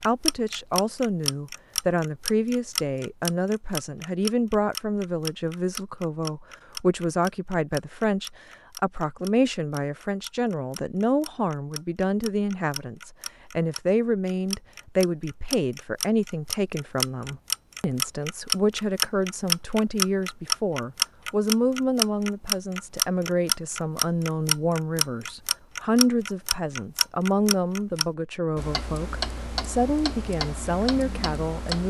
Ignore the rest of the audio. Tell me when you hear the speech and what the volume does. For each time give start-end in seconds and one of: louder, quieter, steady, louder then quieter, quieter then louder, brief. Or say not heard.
0.0-31.8 steady.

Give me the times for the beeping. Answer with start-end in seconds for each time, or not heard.
not heard.